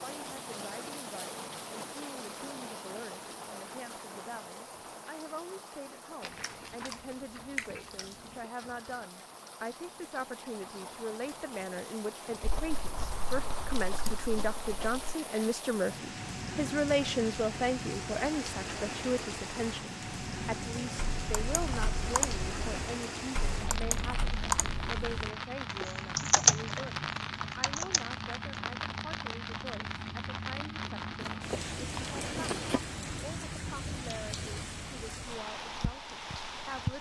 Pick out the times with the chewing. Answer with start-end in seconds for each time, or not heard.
6.2-8.4, 12.4-15.1, 31.2-32.8.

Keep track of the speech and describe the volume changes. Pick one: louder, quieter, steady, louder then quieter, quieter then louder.
louder then quieter.